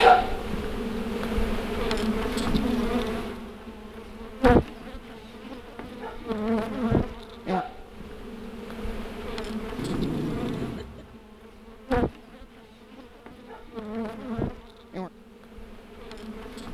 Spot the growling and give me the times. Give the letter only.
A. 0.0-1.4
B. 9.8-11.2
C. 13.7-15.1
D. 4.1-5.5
B.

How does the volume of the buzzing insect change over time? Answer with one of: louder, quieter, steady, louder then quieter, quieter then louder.
quieter.